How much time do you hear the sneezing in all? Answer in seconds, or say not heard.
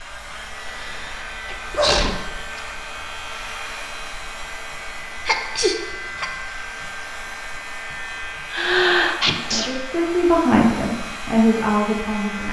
4 s.